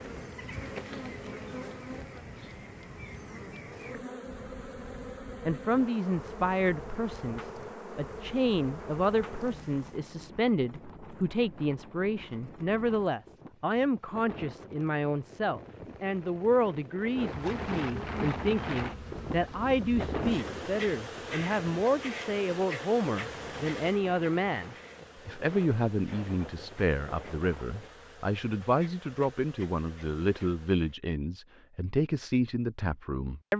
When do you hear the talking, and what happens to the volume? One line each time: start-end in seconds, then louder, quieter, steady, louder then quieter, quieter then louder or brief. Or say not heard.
5.5-33.5 steady.